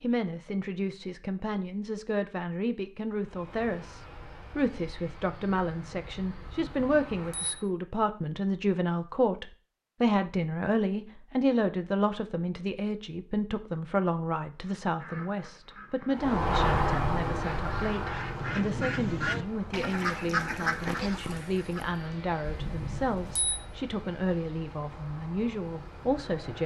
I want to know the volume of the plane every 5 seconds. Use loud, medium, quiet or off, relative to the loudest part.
quiet, quiet, off, loud, quiet, quiet.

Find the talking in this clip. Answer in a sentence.
You can hear the talking from 0.0 to 26.6 s.